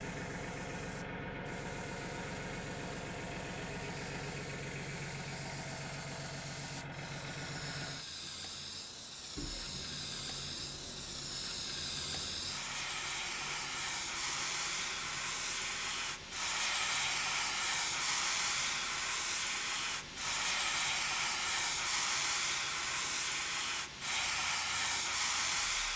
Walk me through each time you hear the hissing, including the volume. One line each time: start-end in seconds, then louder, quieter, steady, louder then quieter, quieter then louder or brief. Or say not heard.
0.0-25.9 louder.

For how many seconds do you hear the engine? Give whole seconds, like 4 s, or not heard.
26 s.